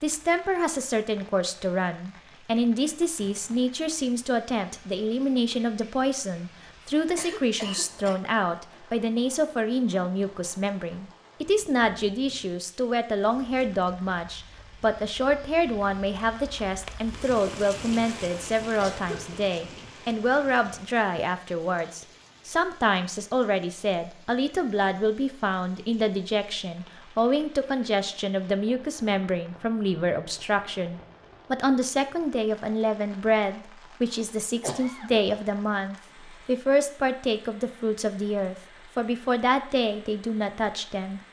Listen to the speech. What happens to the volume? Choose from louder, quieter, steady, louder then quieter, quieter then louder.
steady.